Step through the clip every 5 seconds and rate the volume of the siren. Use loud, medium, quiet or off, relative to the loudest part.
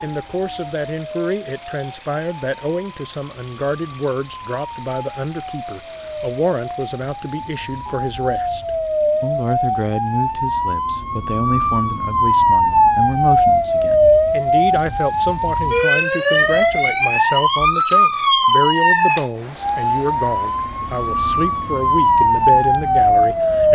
quiet, medium, loud, loud, loud.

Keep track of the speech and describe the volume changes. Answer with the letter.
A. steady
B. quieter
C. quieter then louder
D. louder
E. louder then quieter
A.